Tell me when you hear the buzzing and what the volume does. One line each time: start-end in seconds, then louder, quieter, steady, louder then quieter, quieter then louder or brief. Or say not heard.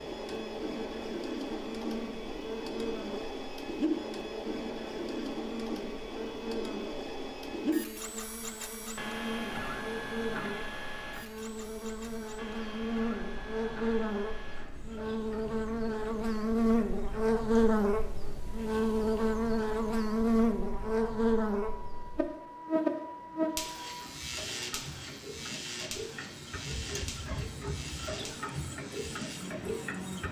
0.1-30.2 louder then quieter.